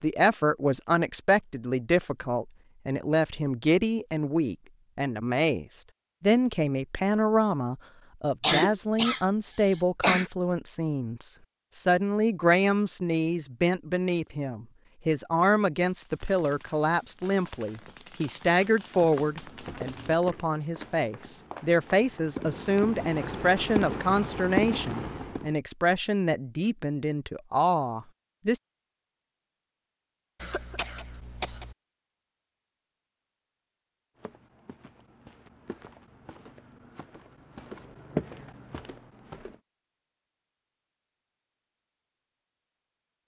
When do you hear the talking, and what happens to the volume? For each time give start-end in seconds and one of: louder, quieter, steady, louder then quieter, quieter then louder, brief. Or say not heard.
0.0-28.6 steady.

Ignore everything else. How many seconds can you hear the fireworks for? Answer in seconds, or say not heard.
10 s.